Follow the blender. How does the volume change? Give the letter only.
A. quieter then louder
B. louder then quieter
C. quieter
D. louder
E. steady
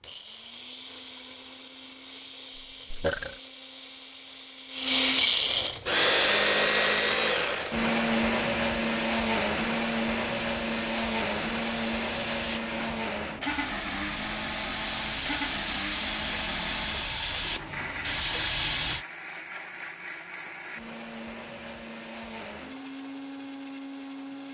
B.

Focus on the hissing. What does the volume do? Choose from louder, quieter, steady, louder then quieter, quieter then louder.
louder.